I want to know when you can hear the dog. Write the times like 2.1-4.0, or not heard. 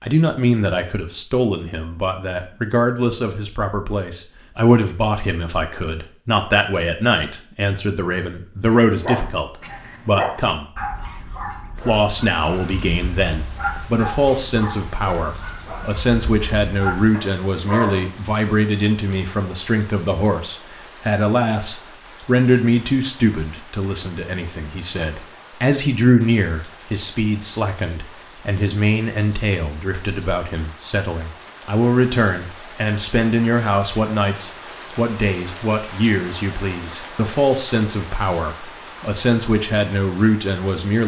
8.7-18.1.